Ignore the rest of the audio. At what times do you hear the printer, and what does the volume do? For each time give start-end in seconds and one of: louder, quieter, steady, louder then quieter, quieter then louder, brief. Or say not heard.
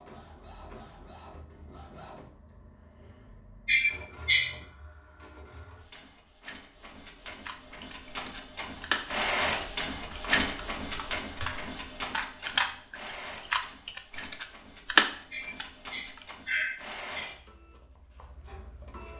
0.0-19.1 louder then quieter.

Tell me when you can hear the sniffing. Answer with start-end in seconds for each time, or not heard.
3.6-4.5, 15.3-17.3.